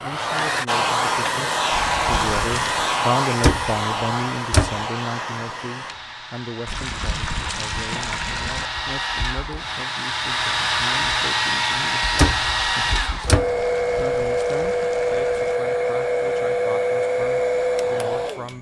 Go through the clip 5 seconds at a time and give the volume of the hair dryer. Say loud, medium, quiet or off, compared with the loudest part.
loud, medium, loud, loud.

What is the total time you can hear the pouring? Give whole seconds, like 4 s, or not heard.
5 s.